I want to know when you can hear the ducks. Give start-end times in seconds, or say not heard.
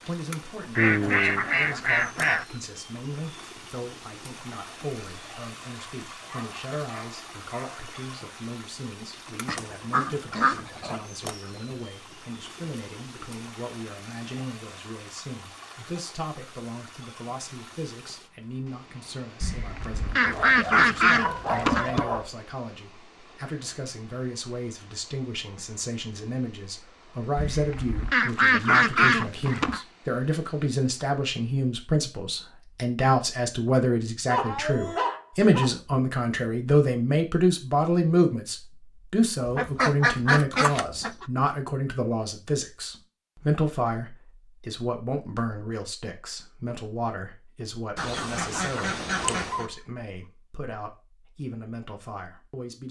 0.8-2.5, 9.4-11.0, 19.4-22.1, 27.4-29.8, 39.5-41.2, 48.0-49.6.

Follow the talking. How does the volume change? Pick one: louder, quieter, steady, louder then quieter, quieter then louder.
louder then quieter.